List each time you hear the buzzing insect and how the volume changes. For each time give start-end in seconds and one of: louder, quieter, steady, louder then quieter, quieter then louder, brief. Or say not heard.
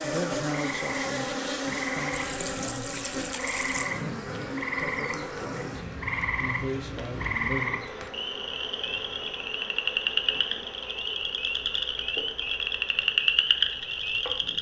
0.0-14.5 quieter.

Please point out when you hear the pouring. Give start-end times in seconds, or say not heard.
2.1-4.0.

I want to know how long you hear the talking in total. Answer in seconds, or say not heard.
8 s.